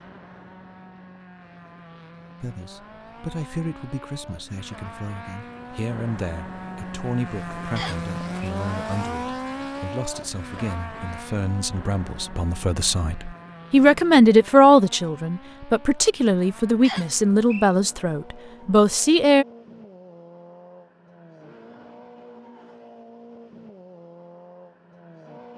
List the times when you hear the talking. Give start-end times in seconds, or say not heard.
2.4-19.4.